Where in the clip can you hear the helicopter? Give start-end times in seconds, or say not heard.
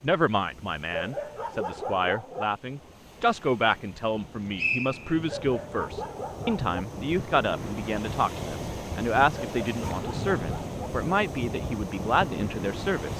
not heard.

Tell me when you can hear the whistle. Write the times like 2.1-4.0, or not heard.
4.2-5.2.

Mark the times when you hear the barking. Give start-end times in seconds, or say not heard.
0.9-2.5, 5.2-6.8, 9.3-10.8.